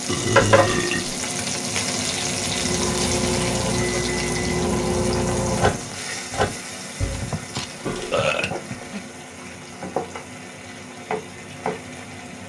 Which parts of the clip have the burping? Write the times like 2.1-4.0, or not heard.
0.1-1.2, 7.0-9.0.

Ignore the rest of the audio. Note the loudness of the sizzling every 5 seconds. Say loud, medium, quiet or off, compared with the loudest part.
loud, medium, medium.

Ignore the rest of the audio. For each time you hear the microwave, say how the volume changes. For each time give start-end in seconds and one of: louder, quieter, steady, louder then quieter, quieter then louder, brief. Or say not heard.
2.5-6.6 steady.